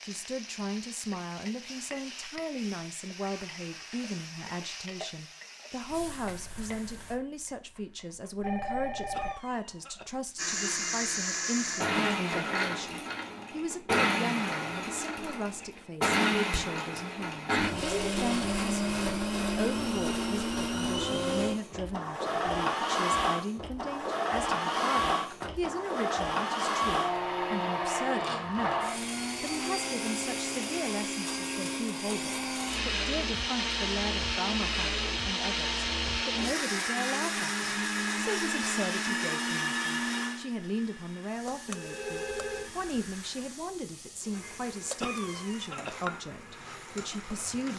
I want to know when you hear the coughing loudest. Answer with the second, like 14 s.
45 s.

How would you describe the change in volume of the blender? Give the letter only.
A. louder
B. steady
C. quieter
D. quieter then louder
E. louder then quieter
C.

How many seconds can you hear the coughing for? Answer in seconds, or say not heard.
2 s.